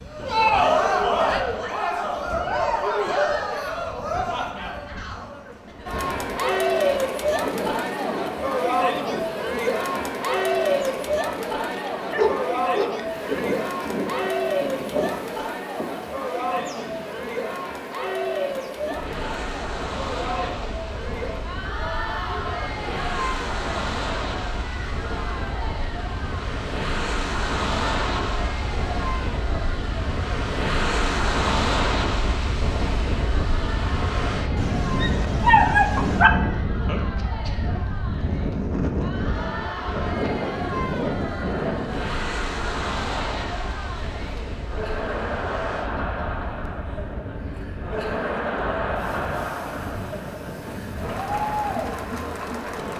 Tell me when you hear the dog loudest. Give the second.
36 s.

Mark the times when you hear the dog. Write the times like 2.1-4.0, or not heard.
11.7-13.2, 34.5-36.3.